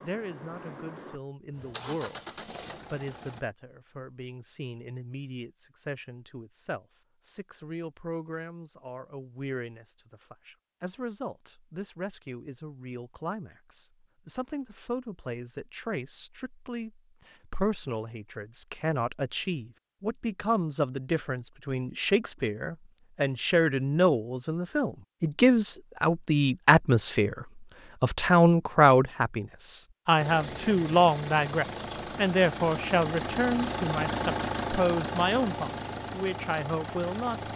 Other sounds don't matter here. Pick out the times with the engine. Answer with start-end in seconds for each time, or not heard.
0.0-3.4, 30.1-37.5.